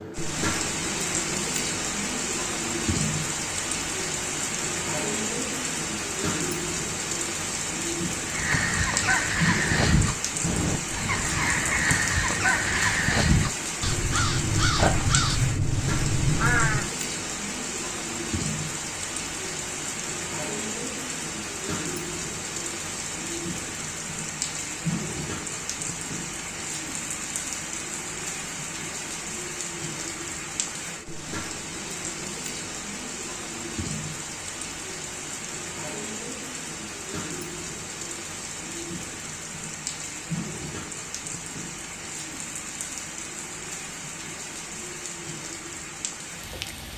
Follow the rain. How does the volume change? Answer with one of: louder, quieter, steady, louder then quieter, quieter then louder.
quieter.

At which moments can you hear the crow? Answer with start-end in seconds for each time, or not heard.
8.2-16.9.